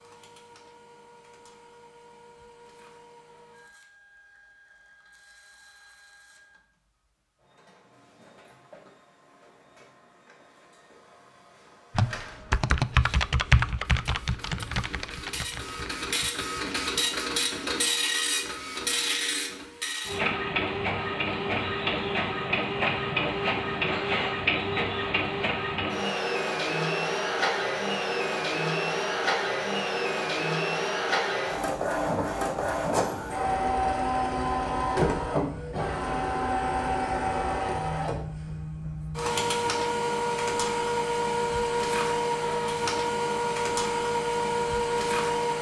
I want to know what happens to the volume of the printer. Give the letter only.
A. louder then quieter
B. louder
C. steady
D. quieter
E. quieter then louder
B.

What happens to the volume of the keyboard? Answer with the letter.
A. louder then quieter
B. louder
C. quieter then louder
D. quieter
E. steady
D.